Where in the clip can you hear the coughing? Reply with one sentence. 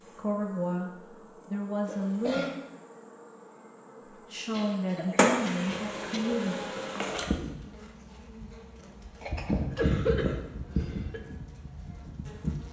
The coughing can be heard from 1.9 to 2.5 s, from 4.5 to 6.3 s and from 9.2 to 11.2 s.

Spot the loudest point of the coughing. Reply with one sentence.
The loudest moment of the coughing is at 10 seconds.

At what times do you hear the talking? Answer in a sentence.
You can hear the talking from 0.1 to 2.5 s and from 4.1 to 6.5 s.